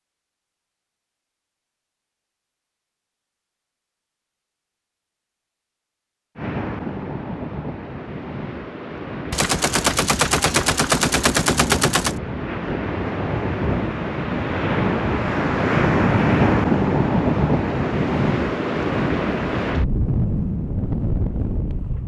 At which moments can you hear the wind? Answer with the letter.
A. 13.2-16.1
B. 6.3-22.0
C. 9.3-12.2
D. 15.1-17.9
B.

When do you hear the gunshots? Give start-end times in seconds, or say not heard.
9.3-12.2.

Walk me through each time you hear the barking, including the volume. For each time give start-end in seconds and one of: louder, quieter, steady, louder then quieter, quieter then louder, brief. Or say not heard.
not heard.